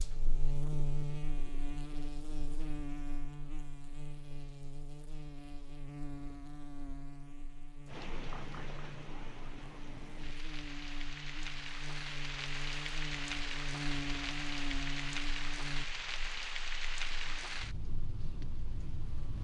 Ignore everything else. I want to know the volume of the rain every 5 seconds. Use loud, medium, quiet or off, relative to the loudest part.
off, medium, loud, loud.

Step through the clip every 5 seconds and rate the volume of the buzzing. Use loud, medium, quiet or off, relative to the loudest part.
loud, medium, loud, medium.